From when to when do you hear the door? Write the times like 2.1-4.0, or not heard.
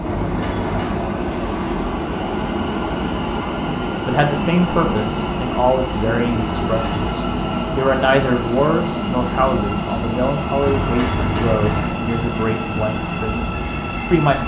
0.1-1.1, 6.5-7.2, 10.6-11.9.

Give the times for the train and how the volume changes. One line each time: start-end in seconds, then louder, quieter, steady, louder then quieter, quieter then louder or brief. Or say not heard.
0.0-14.4 steady.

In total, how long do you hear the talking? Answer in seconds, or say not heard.
10 s.